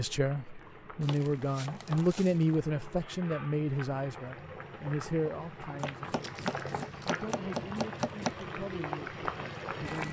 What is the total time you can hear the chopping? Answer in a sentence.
The chopping can be heard for 4 seconds in total.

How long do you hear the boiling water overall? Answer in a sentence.
You can hear the boiling water for 10 seconds altogether.